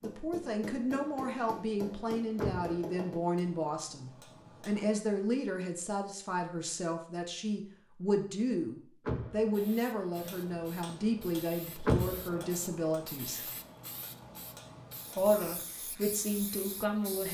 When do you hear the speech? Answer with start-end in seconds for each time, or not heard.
0.0-13.5, 15.2-17.2.